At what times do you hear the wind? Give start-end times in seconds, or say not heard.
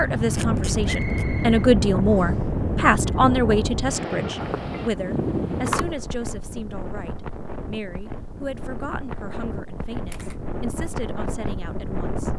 0.0-12.3.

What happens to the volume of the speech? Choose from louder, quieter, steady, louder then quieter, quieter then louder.
quieter.